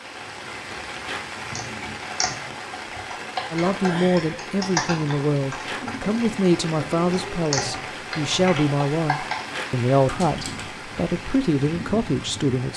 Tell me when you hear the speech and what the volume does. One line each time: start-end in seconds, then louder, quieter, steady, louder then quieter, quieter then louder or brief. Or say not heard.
3.5-12.7 steady.